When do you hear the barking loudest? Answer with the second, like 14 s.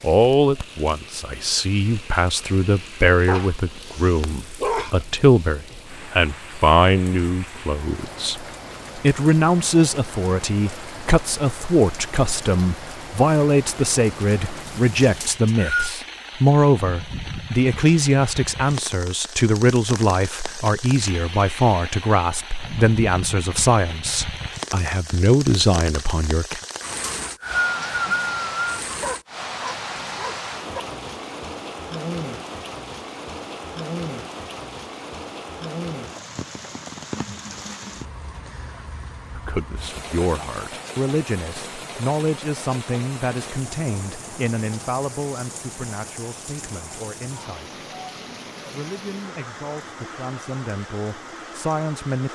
5 s.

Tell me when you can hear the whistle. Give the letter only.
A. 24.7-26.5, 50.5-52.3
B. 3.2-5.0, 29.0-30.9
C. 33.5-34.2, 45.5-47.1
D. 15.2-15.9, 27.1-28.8
D.